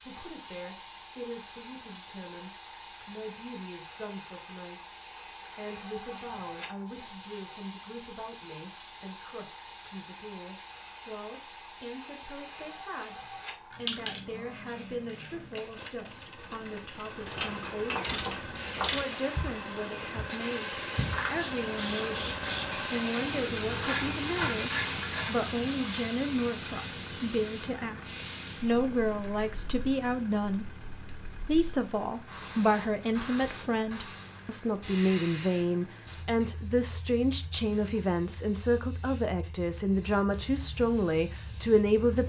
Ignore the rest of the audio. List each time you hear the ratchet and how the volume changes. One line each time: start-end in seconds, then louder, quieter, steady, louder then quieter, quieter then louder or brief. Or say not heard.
17.2-25.6 quieter then louder.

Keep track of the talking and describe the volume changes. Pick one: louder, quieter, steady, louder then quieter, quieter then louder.
louder.